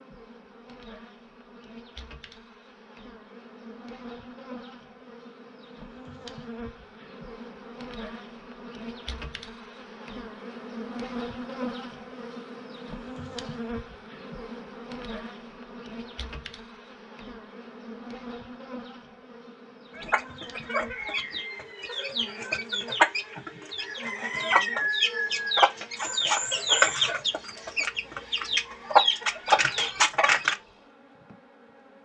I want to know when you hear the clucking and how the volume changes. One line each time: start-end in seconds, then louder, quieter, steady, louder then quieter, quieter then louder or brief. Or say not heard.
19.9-30.6 louder.